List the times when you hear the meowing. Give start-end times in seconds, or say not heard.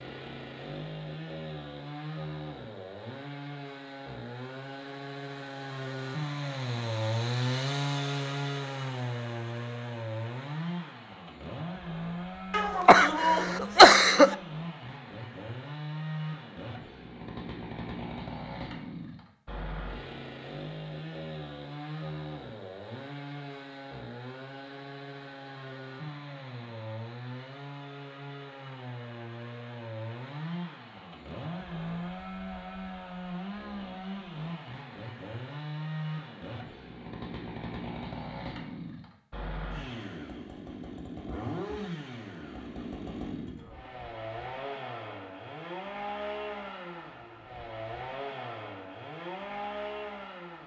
not heard.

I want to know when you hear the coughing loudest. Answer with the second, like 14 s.
14 s.